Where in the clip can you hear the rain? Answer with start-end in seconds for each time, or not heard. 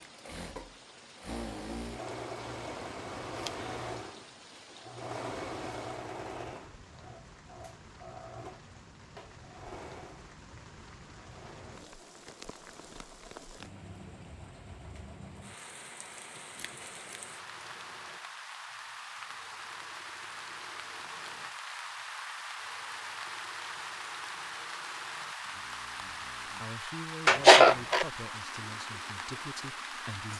0.0-30.3.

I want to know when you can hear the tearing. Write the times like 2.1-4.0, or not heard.
not heard.